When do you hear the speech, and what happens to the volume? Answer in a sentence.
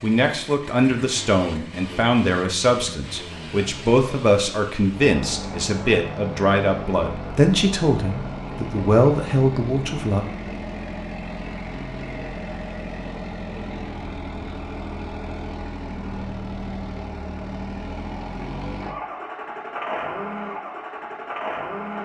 You can hear the speech from 0.0 to 10.2 s, at a steady volume.